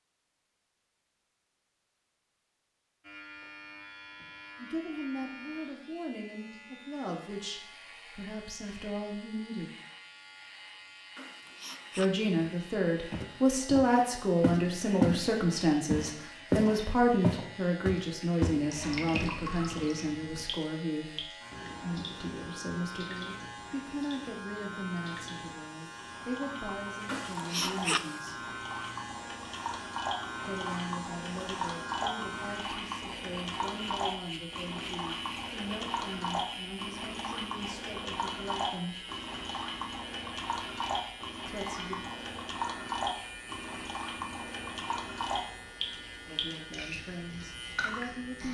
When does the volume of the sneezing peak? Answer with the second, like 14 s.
28 s.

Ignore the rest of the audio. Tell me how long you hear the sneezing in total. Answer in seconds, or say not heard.
2 s.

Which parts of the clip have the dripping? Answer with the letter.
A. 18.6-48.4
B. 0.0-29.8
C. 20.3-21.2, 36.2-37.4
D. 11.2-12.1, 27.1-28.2
A.